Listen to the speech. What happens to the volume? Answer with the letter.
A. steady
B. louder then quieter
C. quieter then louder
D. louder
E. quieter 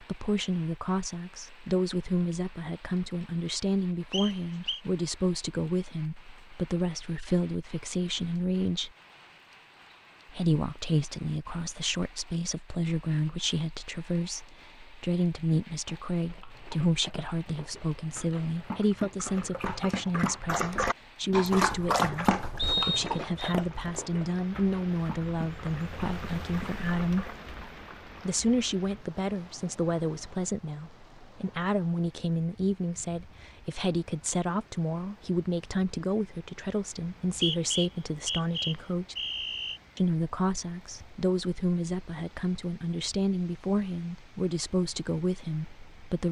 A.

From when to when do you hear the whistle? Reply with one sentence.
The whistle can be heard from 4.1 to 4.8 s, from 22.6 to 23.6 s and from 37.0 to 39.8 s.